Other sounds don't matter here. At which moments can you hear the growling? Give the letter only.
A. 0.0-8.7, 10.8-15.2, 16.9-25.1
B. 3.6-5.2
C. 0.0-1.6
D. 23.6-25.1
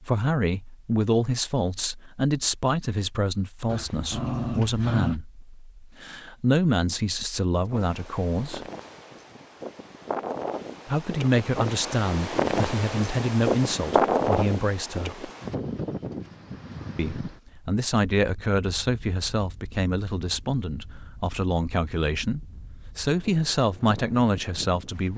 B.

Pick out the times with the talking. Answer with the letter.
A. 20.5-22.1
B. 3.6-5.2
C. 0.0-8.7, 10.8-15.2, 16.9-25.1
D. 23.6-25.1
C.